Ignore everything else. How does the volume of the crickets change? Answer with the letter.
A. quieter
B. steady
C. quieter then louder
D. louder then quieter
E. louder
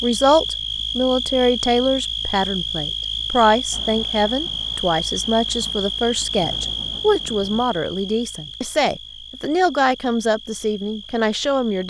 A.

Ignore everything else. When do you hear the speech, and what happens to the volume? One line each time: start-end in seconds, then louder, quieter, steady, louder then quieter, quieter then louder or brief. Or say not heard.
0.0-11.8 steady.